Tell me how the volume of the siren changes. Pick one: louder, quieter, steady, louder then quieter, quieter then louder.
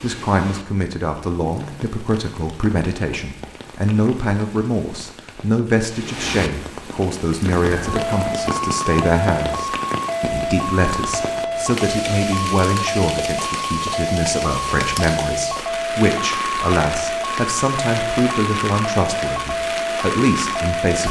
steady.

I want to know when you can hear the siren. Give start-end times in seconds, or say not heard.
7.7-21.0.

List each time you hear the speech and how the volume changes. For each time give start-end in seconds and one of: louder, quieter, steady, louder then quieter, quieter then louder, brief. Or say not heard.
0.0-21.0 steady.